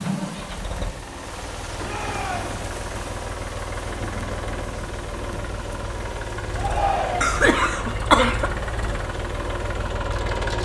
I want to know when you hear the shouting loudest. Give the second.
7 s.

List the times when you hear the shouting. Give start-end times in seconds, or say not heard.
1.8-2.5, 6.5-7.5.